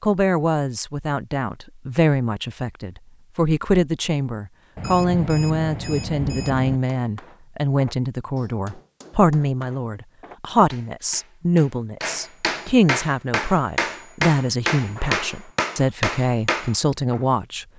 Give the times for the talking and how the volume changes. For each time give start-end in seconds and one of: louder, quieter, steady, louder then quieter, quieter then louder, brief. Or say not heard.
0.0-17.6 steady.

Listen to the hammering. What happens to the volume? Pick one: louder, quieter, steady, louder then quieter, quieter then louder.
louder.